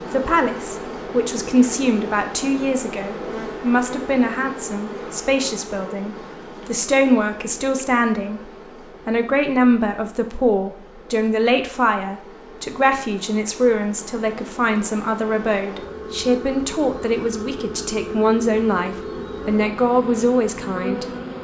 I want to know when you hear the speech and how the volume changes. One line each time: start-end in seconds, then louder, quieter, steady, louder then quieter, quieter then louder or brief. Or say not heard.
0.0-21.1 steady.